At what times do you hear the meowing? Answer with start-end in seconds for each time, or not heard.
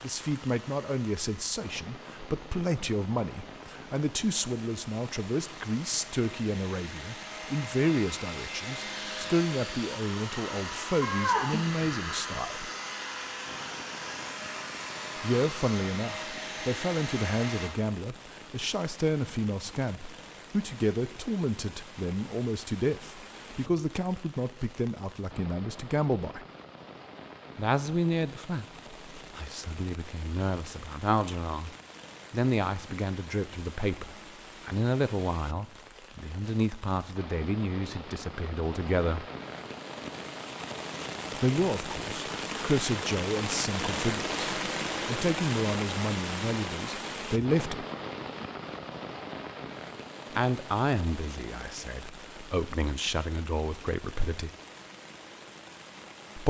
11.0-12.3.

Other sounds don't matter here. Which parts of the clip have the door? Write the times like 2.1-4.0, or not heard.
not heard.